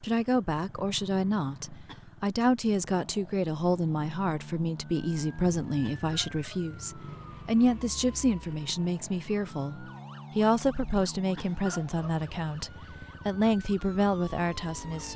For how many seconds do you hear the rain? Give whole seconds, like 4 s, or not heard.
not heard.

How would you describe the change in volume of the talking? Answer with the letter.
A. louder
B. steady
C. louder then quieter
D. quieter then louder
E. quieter
B.